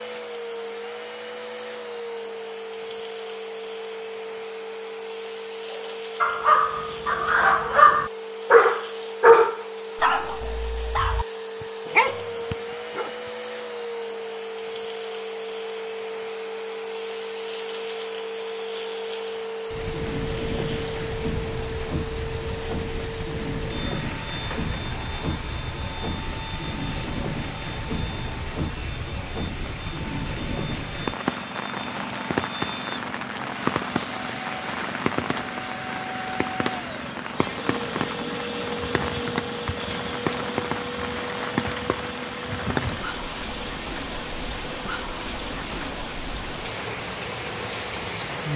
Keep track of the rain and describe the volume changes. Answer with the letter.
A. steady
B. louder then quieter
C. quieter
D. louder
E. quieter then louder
A.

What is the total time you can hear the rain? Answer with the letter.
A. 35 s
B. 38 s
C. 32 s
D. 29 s
D.